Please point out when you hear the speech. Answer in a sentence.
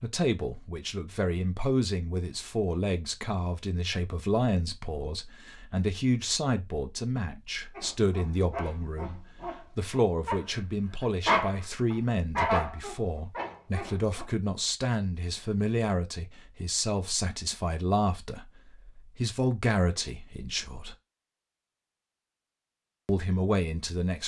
You can hear the speech from 0.0 to 20.9 s and from 23.1 to 24.2 s.